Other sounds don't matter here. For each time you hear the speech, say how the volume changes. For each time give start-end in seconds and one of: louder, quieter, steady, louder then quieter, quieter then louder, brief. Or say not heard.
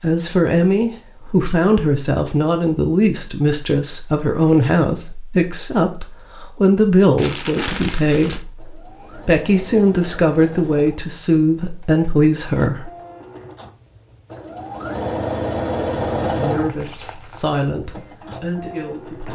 0.0-12.9 steady
16.4-19.3 brief.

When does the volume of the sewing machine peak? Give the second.
16 s.